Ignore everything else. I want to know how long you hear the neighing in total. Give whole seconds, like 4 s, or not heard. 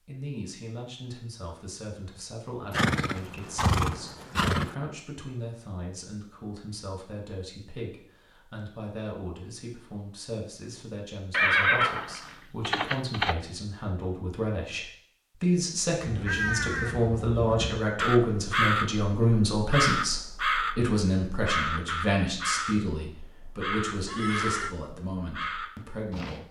5 s.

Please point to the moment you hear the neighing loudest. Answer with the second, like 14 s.
12 s.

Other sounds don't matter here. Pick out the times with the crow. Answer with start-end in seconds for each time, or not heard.
16.0-26.4.